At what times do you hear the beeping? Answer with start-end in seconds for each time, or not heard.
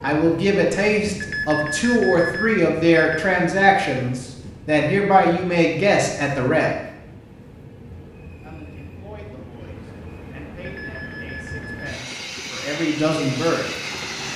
1.2-3.2, 10.6-11.8.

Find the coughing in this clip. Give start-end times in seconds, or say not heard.
not heard.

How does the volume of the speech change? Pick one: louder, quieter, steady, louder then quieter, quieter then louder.
quieter then louder.